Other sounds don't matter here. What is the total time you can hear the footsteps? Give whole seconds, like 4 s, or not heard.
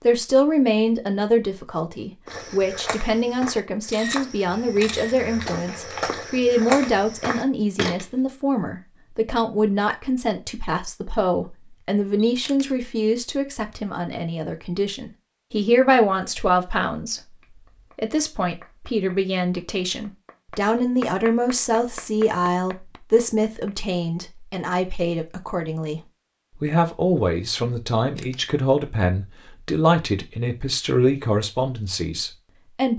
6 s.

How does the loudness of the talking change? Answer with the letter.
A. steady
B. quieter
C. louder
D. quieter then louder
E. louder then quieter
A.